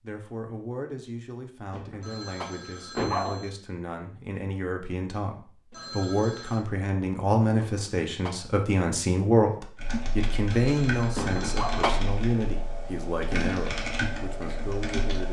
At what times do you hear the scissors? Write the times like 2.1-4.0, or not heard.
not heard.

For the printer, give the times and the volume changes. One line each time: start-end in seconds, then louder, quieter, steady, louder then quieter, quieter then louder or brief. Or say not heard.
not heard.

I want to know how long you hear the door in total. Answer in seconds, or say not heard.
3 s.